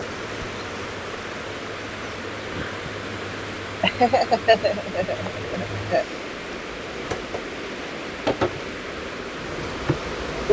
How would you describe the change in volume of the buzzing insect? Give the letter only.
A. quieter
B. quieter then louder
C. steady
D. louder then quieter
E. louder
E.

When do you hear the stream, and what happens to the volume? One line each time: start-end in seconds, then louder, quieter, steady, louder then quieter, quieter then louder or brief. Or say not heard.
0.0-10.4 steady.